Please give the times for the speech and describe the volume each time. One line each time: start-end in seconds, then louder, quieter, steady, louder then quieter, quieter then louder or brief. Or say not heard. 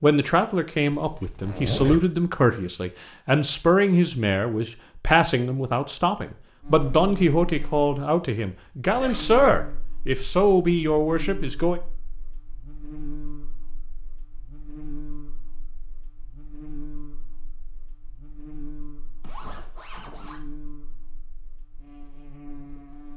0.0-11.8 steady.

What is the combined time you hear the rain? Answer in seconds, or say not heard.
not heard.